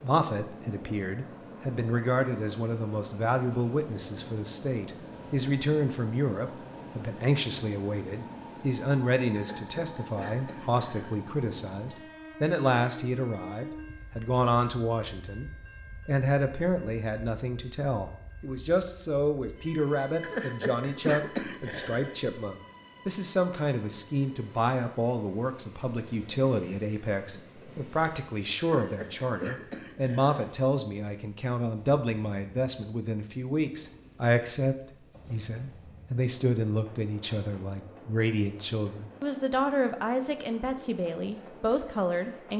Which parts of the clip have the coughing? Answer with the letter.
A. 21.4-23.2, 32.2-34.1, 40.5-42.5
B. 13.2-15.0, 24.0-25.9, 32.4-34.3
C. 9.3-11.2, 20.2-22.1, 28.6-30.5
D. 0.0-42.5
C.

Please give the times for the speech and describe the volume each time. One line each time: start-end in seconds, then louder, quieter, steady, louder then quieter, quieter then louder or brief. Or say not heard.
0.0-42.5 steady.